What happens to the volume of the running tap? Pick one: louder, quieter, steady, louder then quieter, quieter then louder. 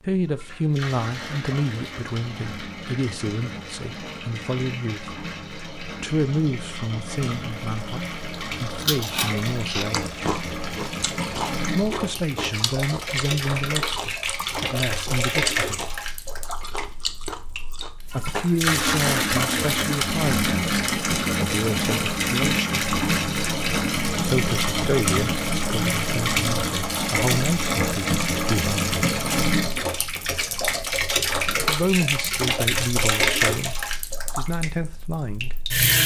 louder.